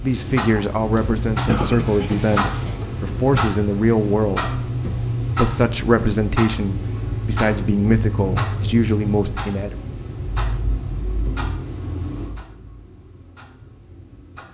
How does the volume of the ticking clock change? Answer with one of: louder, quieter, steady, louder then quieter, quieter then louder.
quieter.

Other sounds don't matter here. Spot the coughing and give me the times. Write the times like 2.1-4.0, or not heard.
1.4-2.9.